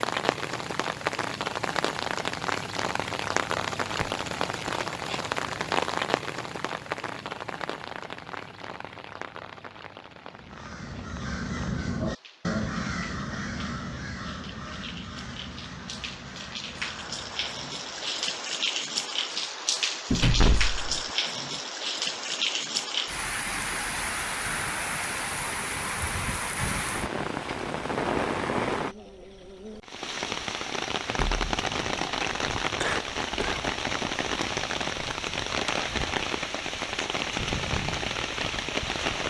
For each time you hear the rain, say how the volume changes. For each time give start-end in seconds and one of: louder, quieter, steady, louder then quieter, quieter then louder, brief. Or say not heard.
0.0-39.2 quieter then louder.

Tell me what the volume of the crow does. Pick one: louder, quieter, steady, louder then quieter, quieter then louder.
quieter.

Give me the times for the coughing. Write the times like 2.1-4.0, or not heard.
32.8-33.7.